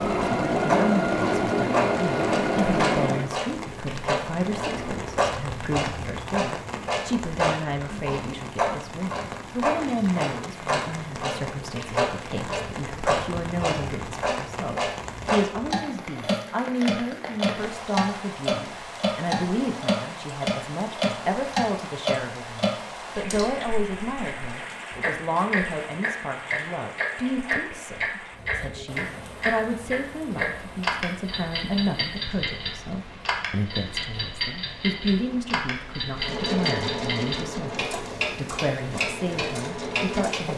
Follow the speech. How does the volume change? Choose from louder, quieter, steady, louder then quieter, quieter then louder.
steady.